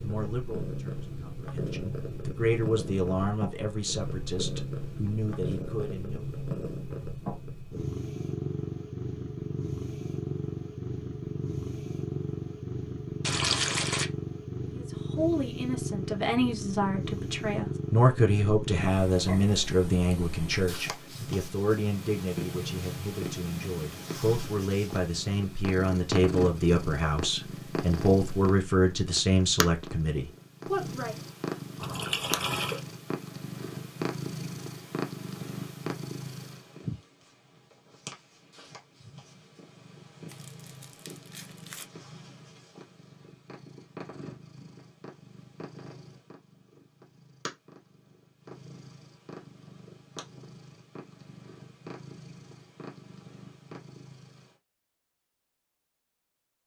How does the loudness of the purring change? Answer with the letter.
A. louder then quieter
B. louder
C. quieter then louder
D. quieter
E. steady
D.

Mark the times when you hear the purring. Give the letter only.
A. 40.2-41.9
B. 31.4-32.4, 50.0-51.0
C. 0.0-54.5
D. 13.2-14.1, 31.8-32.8
C.